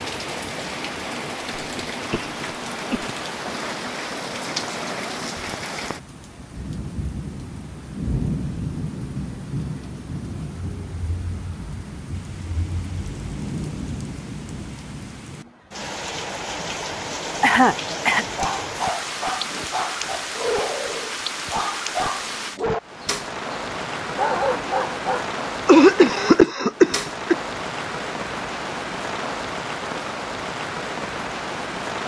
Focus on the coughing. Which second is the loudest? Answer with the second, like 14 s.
26 s.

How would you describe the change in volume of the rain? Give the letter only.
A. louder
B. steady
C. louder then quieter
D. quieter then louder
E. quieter
B.